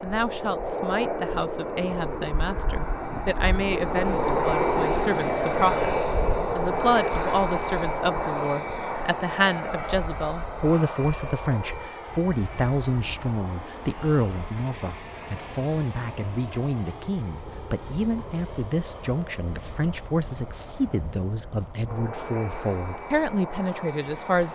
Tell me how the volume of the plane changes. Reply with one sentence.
The volume of the plane goes down.